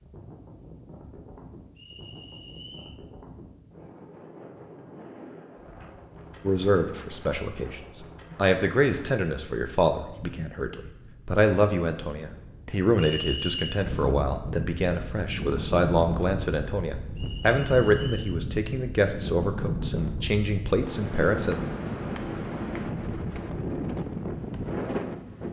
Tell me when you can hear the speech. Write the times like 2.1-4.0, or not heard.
6.5-21.6.